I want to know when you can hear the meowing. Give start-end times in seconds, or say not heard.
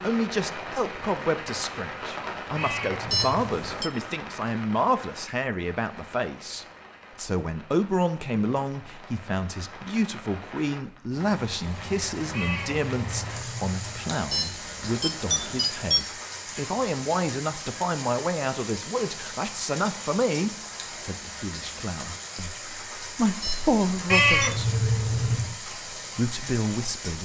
2.5-3.4, 12.3-14.2, 24.1-25.6.